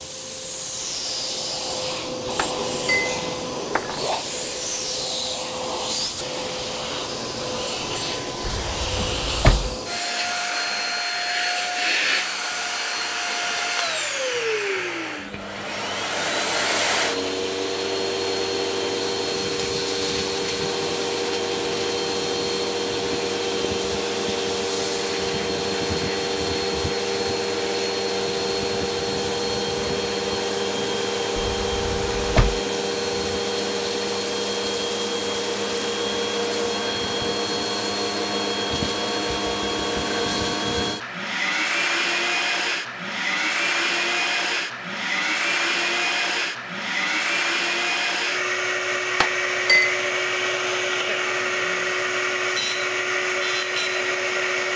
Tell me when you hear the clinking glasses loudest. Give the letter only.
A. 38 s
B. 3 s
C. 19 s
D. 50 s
D.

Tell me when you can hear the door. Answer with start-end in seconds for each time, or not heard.
8.4-9.8, 31.4-32.6.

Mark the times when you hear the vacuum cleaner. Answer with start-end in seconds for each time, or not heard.
0.0-54.7.